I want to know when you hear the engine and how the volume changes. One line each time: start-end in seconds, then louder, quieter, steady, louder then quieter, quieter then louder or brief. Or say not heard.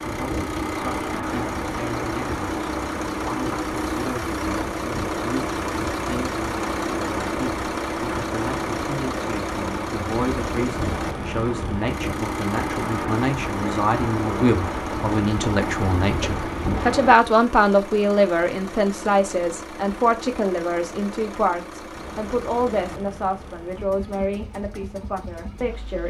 0.0-26.0 quieter.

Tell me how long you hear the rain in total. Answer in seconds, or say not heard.
17 s.